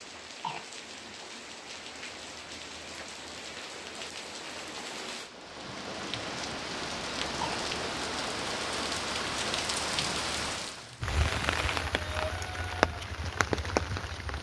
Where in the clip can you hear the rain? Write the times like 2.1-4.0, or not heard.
0.0-14.3.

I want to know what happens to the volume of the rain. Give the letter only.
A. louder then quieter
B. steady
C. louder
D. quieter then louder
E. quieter
C.